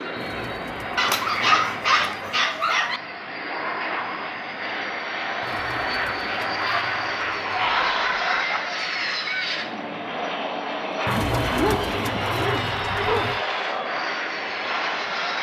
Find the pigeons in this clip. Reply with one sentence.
You can hear the pigeons from 0.1 to 2.4 s, from 5.4 to 7.8 s and from 11.1 to 13.4 s.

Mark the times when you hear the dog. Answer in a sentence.
The dog can be heard from 0.9 to 3.0 s, from 6.6 to 8.6 s and from 11.6 to 13.3 s.